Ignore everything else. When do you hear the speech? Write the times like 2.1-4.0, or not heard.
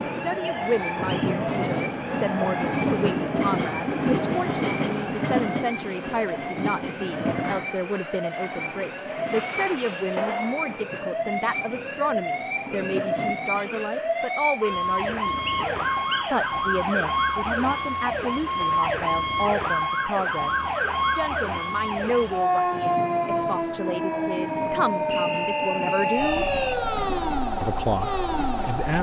0.0-15.3, 16.3-26.5, 27.6-28.9.